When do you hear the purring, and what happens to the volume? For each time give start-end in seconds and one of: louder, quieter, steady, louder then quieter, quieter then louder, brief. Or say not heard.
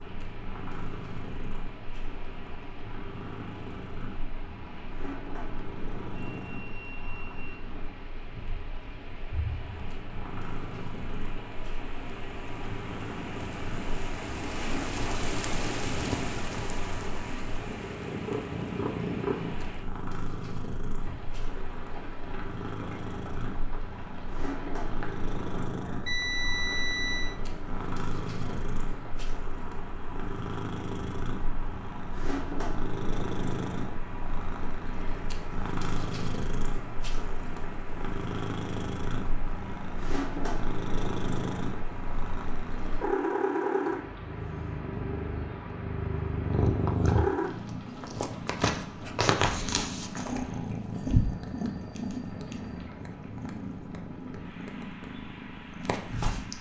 0.0-56.5 louder.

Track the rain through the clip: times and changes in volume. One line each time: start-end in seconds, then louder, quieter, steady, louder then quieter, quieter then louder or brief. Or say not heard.
0.0-56.5 louder then quieter.